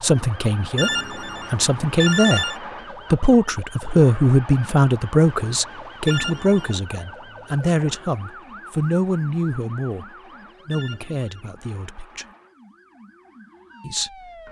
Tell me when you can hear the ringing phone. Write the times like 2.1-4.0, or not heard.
0.8-2.6, 6.0-6.8, 10.7-11.8.